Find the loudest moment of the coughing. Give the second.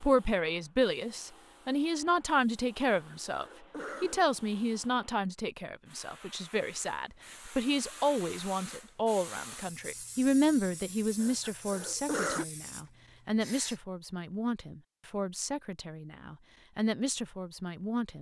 12 s.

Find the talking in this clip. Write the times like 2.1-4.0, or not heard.
0.0-18.1.